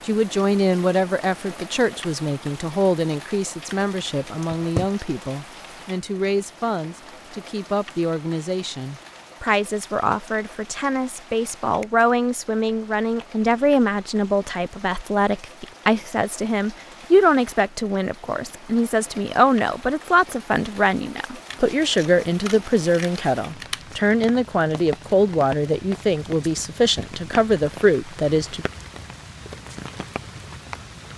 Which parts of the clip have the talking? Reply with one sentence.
The talking can be heard from 0.1 to 28.6 s.